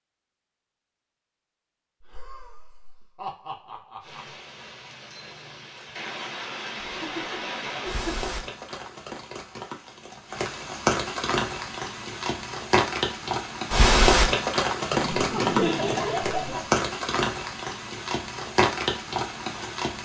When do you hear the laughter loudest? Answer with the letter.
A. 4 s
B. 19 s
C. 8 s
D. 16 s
D.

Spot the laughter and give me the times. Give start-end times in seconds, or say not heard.
2.0-4.4, 6.8-8.3, 14.9-16.6.